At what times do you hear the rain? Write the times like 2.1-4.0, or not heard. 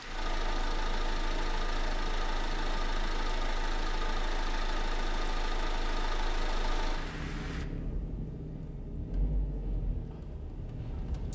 0.0-7.7.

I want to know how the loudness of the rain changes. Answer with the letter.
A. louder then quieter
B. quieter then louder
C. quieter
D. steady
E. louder
D.